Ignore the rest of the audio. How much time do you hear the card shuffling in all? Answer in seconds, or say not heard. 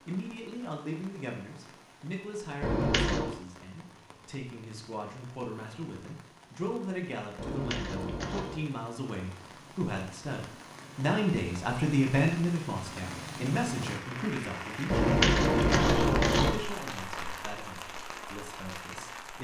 4 s.